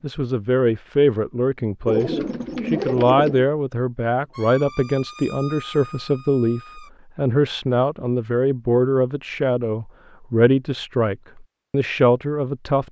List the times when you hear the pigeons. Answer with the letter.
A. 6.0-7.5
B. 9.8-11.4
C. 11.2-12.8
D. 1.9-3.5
D.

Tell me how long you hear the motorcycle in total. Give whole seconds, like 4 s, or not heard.
not heard.